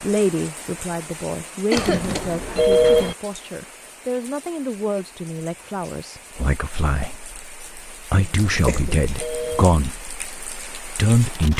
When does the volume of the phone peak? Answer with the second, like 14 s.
3 s.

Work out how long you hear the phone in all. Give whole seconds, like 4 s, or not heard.
3 s.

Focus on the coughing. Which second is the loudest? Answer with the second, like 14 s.
2 s.